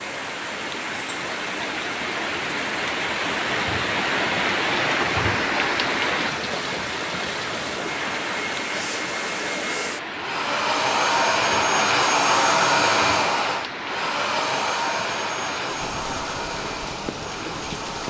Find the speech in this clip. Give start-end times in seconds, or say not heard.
not heard.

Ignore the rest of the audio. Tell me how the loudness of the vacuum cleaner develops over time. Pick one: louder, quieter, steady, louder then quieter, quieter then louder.
louder then quieter.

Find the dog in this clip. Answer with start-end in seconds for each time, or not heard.
not heard.